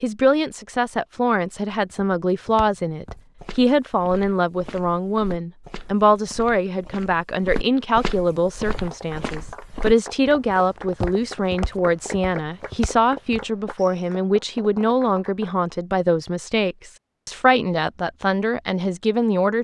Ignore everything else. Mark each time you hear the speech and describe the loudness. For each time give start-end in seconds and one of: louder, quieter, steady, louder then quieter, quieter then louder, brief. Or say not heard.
0.0-19.5 steady.